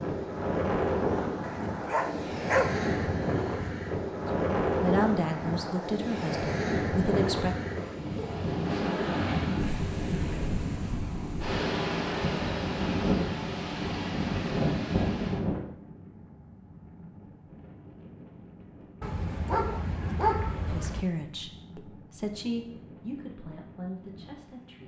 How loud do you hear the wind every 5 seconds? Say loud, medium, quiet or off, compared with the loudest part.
loud, loud, loud, medium, quiet.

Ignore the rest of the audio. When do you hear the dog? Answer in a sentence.
You can hear the dog from 1.4 to 3.0 s and from 19.0 to 21.1 s.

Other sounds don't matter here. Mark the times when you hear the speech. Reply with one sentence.
The speech can be heard from 4.8 to 7.5 s and from 20.6 to 24.8 s.